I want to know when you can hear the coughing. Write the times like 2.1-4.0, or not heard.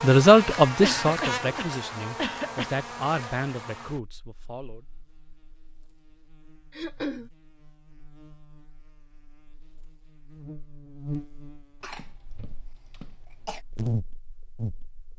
0.8-2.7, 6.7-7.3, 11.8-13.6.